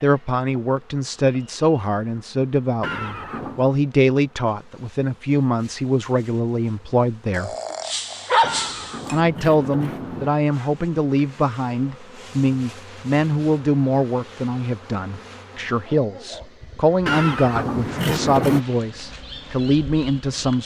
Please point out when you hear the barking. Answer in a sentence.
You can hear the barking from 7.3 to 9.2 s.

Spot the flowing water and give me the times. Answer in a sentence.
You can't hear the flowing water here.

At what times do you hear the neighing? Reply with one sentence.
The neighing can be heard from 2.8 to 3.7 s, from 8.4 to 10.3 s and from 17.1 to 18.6 s.